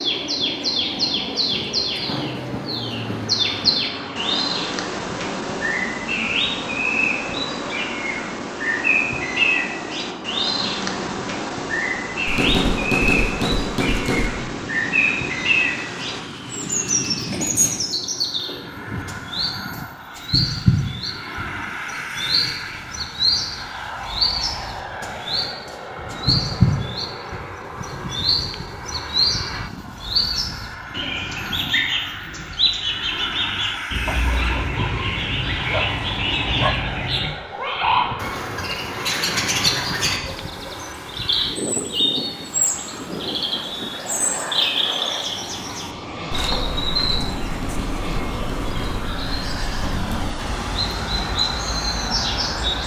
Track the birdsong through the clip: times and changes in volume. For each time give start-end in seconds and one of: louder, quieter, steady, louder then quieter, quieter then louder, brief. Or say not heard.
0.0-52.8 steady.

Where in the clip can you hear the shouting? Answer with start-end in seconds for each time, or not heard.
not heard.